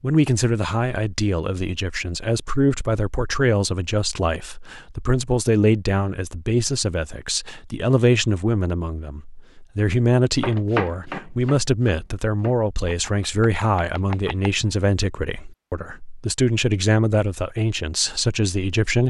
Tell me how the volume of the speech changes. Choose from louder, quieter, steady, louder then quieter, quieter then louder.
steady.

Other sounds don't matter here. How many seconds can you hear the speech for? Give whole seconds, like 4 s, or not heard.
19 s.